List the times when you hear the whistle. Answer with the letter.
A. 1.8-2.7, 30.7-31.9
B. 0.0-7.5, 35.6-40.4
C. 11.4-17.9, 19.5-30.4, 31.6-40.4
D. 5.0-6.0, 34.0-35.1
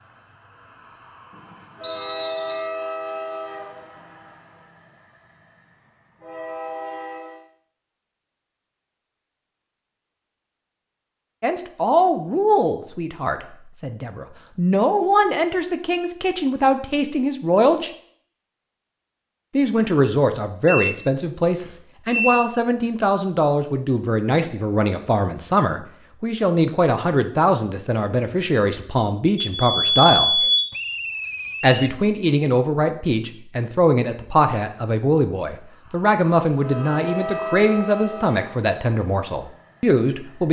A.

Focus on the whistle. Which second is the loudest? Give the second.
31 s.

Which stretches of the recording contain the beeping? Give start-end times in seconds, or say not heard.
1.3-2.7, 20.6-22.4, 29.4-31.3.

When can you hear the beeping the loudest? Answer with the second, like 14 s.
30 s.